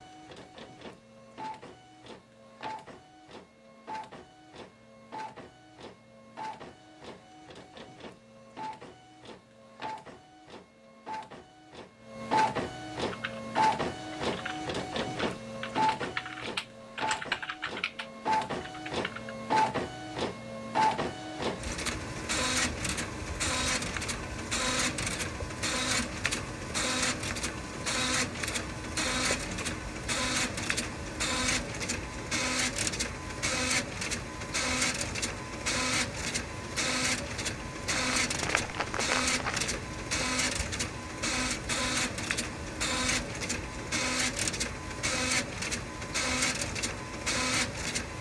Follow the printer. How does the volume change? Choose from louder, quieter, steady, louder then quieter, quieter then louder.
louder.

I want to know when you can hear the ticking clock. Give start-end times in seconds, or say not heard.
not heard.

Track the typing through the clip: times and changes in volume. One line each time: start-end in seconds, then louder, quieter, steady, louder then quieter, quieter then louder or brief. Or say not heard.
12.9-19.4 louder then quieter.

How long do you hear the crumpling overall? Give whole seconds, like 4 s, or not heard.
2 s.